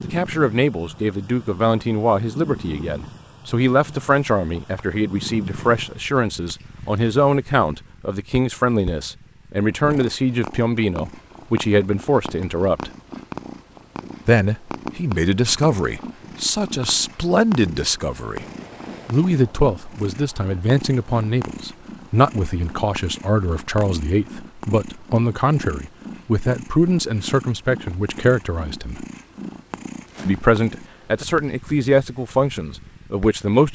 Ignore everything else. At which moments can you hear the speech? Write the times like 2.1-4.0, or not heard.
0.0-12.9, 14.2-18.4, 19.1-29.1, 30.2-33.7.